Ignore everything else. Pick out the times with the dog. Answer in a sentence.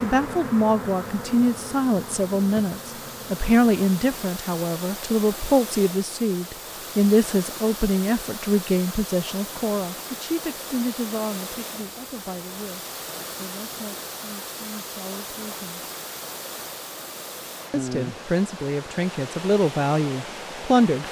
The dog can't be heard in this clip.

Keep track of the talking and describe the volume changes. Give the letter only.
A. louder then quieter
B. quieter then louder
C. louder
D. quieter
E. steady
B.